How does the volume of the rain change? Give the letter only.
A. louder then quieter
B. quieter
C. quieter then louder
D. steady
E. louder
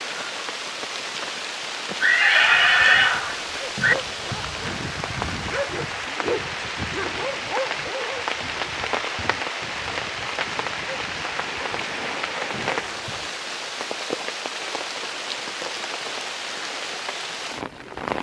D.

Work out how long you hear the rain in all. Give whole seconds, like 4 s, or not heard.
18 s.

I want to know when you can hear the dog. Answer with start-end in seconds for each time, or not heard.
2.4-13.3.